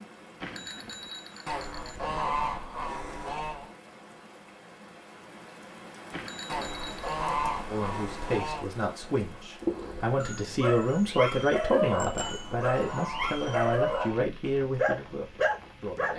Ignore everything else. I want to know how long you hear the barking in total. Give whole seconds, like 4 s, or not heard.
6 s.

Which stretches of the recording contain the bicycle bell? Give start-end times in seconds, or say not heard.
0.4-2.4, 6.1-7.2, 11.9-12.4.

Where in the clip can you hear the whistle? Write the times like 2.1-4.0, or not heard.
not heard.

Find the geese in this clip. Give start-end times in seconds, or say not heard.
1.4-3.7, 6.5-8.7, 12.2-14.2.